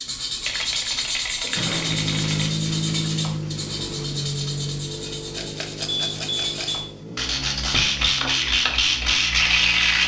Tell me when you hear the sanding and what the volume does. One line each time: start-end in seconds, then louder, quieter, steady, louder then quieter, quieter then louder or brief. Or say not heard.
0.0-10.0 quieter then louder.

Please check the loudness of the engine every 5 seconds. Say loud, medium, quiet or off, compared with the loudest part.
loud, medium.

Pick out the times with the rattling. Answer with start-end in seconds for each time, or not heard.
0.4-2.5, 5.3-6.8.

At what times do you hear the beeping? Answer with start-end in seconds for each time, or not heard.
5.8-6.8.